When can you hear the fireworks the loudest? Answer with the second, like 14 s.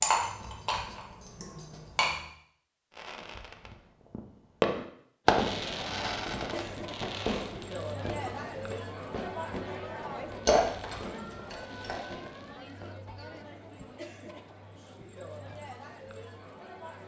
5 s.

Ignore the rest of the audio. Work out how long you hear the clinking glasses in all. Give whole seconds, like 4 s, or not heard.
3 s.